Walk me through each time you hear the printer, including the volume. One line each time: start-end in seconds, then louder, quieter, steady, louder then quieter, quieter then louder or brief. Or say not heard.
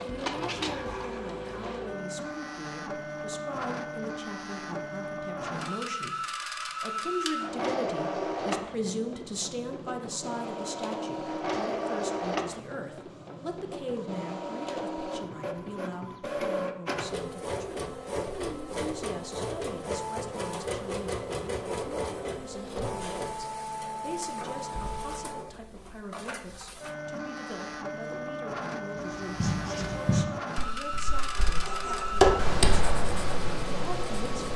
0.0-34.5 steady.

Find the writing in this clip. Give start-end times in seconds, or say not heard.
28.9-34.5.